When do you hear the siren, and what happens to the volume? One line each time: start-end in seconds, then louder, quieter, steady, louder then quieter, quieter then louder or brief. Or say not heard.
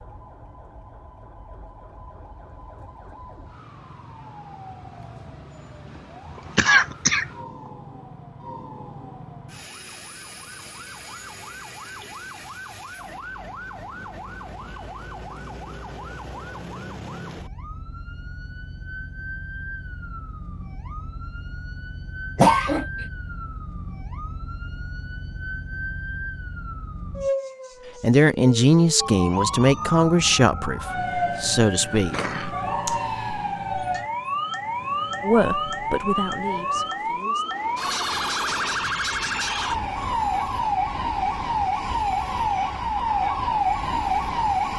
0.0-44.7 louder.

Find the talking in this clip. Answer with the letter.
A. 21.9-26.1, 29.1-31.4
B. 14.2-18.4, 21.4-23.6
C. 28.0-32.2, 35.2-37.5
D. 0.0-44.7
C.